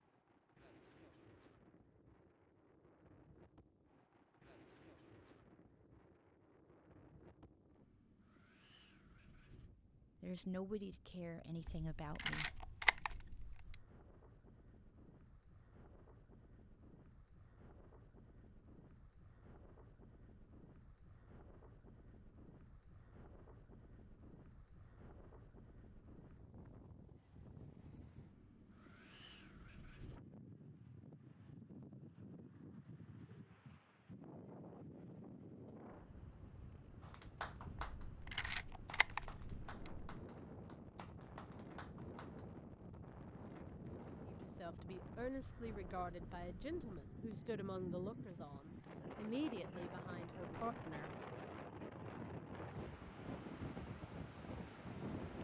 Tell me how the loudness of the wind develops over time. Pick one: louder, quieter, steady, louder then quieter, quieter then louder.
louder.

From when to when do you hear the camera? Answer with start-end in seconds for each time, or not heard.
11.7-13.8, 38.0-40.1.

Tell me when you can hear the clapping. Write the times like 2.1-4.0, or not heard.
37.0-42.5.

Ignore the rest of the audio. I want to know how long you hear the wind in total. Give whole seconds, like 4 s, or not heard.
55 s.